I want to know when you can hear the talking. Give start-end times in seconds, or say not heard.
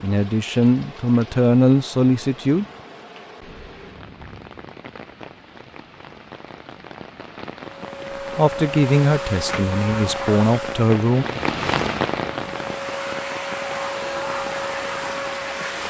0.0-2.6, 8.3-11.2.